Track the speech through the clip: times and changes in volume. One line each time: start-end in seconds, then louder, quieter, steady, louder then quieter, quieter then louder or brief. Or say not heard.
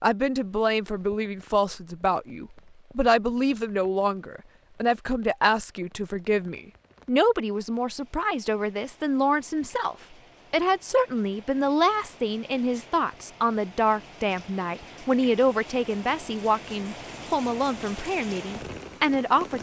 0.0-19.5 steady.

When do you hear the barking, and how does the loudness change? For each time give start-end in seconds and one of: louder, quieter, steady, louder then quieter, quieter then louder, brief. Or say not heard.
not heard.